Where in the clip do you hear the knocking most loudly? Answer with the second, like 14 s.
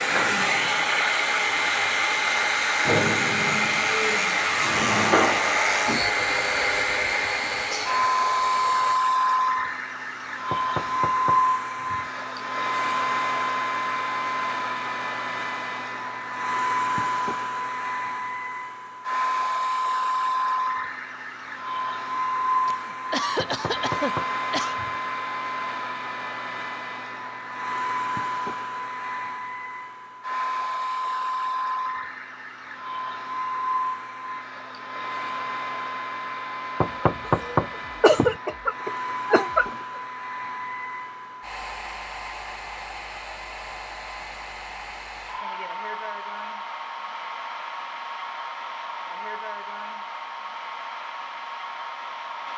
37 s.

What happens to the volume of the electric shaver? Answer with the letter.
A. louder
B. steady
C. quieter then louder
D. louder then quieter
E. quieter
D.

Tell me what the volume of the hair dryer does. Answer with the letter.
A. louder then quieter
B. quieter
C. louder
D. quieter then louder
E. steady
B.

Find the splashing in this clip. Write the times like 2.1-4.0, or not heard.
not heard.